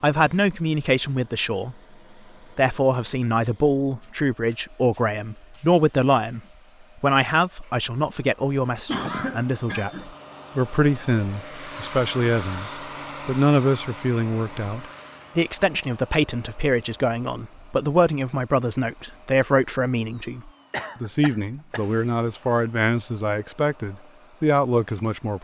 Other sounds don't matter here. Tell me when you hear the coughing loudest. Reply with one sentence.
The volume of the coughing peaks at 9 seconds.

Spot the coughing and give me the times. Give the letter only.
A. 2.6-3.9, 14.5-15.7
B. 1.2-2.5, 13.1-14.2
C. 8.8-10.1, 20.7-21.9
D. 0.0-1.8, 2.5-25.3
C.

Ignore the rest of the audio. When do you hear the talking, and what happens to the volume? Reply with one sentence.
The talking can be heard briefly from 0.0 to 1.8 s; and from 2.5 to 25.3 s, at a steady volume.